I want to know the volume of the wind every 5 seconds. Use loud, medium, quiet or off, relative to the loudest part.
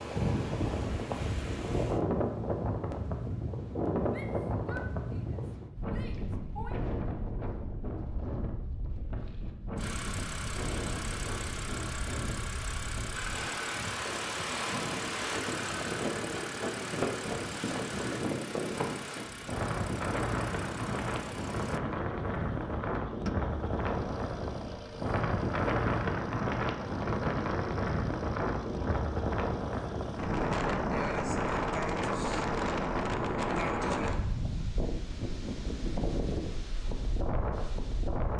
loud, medium, medium, loud, loud, loud, loud, medium.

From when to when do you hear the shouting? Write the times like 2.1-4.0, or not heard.
4.1-6.8.